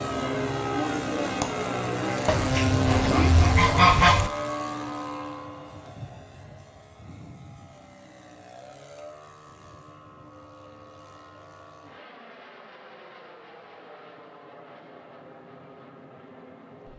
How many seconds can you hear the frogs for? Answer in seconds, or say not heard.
not heard.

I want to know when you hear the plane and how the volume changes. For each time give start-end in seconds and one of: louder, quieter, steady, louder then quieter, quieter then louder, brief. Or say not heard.
0.0-16.9 quieter.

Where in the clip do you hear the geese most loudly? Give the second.
4 s.